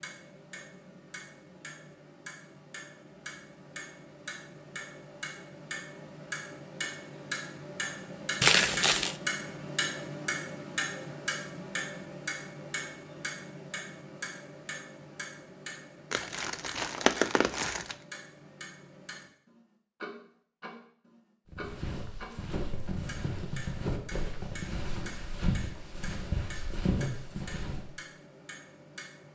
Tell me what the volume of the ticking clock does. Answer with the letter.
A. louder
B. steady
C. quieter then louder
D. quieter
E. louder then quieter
E.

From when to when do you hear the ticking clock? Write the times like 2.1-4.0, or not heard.
0.0-29.2.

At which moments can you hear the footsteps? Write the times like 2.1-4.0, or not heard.
21.5-27.9.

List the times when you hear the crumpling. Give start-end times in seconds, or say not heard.
8.4-9.2, 16.1-17.9.